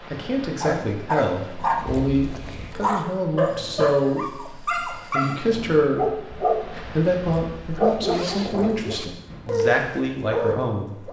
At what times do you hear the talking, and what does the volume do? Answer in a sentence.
The talking can be heard from 0.1 to 11.0 s, at a steady volume.